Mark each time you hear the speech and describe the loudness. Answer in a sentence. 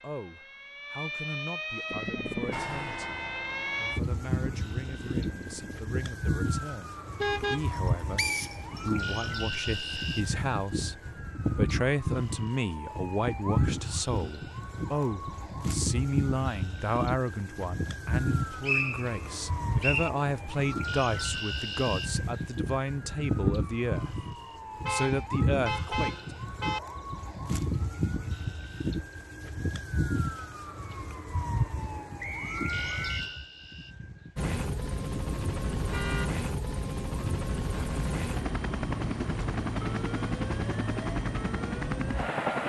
The speech can be heard from 0.0 to 24.1 s, getting louder; and briefly from 24.9 to 26.1 s.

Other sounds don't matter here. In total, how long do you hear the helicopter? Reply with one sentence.
The helicopter can be heard for 12 seconds in total.